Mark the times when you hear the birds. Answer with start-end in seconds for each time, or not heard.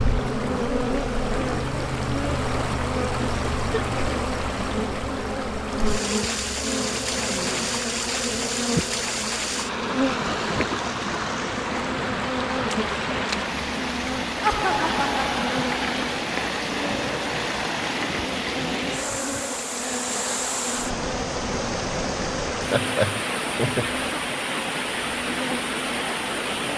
not heard.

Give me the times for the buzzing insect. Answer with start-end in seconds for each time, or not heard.
0.0-26.7.